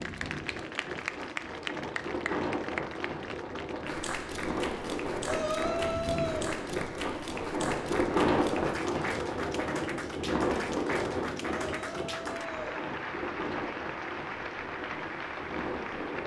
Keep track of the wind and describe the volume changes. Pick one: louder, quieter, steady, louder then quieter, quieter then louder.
louder then quieter.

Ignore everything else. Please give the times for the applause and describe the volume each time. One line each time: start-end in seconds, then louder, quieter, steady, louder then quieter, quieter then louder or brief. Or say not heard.
0.0-16.2 steady.